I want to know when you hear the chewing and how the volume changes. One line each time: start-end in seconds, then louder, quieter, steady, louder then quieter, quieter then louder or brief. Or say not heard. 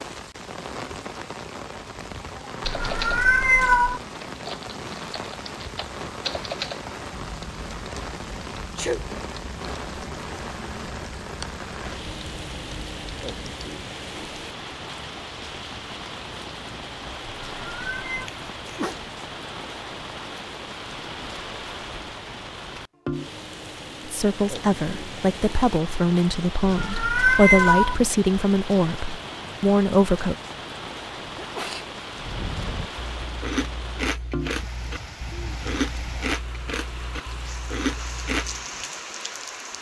32.2-38.6 steady.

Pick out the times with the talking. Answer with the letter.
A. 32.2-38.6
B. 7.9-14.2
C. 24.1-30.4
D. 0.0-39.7
C.